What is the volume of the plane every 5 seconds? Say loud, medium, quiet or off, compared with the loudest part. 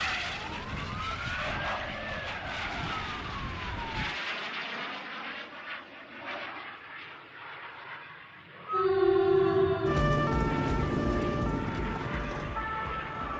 loud, medium, medium.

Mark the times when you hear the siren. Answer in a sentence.
You can hear the siren from 0.0 to 4.2 s and from 8.7 to 13.3 s.